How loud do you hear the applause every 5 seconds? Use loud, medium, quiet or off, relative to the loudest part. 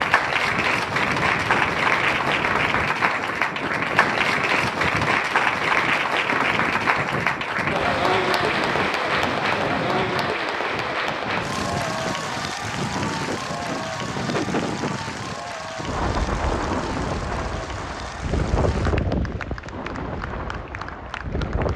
loud, loud, medium, quiet, quiet.